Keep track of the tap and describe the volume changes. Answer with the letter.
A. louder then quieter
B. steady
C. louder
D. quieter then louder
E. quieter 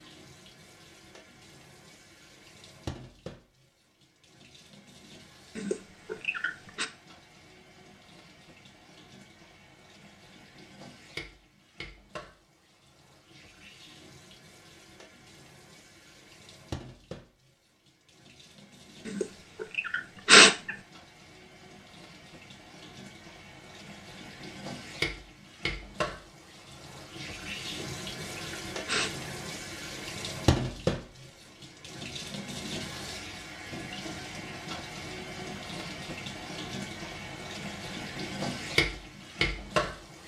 C.